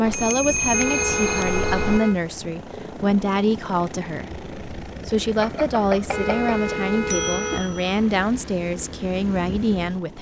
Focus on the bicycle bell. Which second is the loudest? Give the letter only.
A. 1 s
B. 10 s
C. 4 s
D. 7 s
A.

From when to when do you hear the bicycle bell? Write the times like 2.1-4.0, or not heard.
0.1-2.0, 5.4-8.0.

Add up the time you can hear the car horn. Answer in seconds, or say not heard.
3 s.